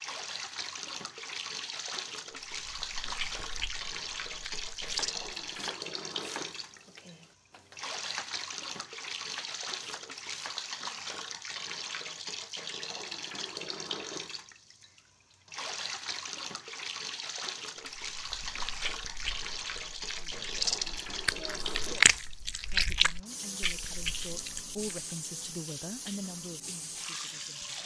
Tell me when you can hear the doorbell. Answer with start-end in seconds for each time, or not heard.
not heard.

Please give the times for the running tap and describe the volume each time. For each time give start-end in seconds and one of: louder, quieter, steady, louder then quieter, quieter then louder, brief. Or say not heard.
0.0-27.8 steady.